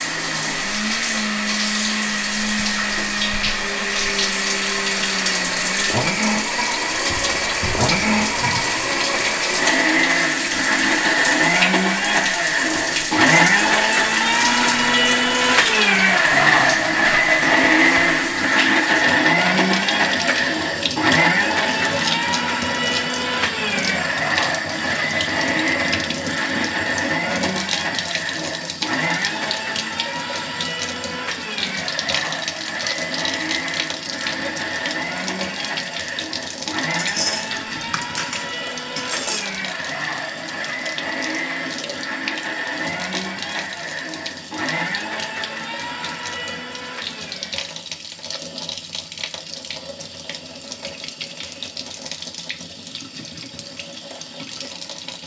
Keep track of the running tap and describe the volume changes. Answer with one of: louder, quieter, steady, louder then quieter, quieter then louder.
quieter.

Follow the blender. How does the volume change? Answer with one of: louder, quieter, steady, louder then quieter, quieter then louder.
louder then quieter.